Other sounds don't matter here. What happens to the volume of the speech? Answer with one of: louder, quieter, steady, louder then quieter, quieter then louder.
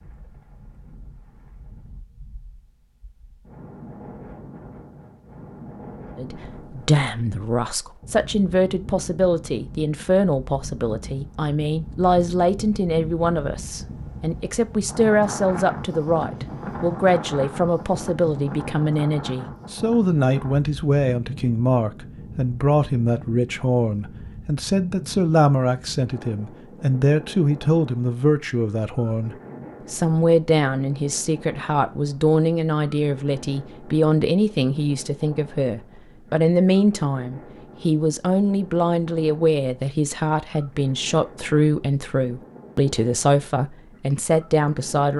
steady.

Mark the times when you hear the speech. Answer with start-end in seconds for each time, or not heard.
6.2-45.1.